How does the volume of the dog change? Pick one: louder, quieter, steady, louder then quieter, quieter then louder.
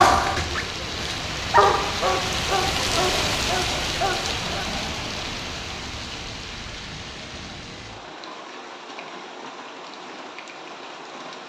louder then quieter.